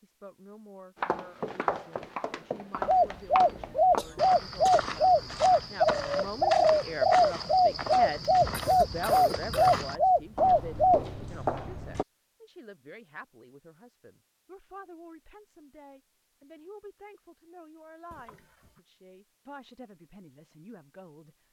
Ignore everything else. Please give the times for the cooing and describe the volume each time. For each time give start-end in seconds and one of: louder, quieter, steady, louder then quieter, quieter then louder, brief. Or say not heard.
2.9-11.0 steady.